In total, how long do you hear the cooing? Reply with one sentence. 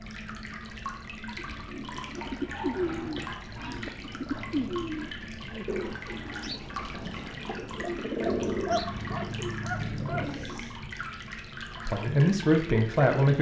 You can hear the cooing for 10 seconds altogether.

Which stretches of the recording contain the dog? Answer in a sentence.
You can hear the dog from 2.5 to 3.9 s and from 8.2 to 10.2 s.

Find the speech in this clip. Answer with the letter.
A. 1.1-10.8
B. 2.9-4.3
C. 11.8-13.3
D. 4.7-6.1
C.